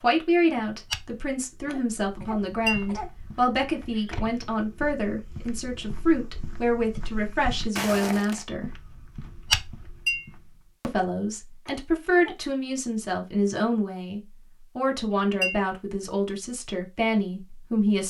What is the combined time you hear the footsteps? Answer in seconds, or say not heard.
10 s.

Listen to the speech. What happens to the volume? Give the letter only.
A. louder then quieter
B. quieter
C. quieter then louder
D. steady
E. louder
D.